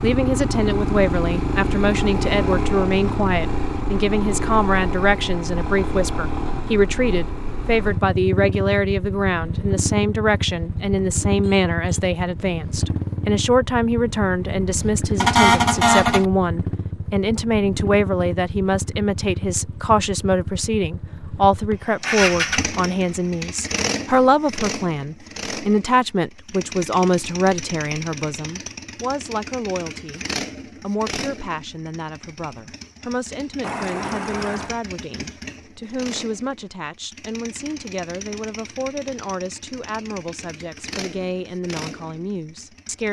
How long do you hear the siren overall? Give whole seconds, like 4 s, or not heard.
not heard.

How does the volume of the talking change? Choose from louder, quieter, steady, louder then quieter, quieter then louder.
quieter.